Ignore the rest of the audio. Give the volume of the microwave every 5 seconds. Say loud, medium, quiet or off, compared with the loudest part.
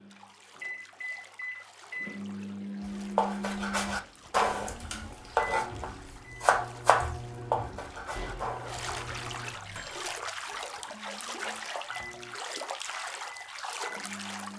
loud, medium, medium.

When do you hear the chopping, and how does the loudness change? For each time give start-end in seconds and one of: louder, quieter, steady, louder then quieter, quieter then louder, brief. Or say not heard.
2.9-9.2 louder then quieter.